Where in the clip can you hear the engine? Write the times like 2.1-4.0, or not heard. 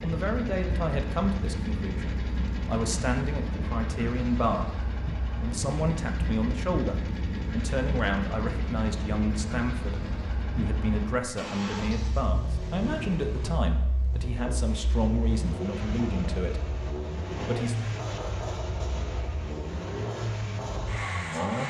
0.0-21.6.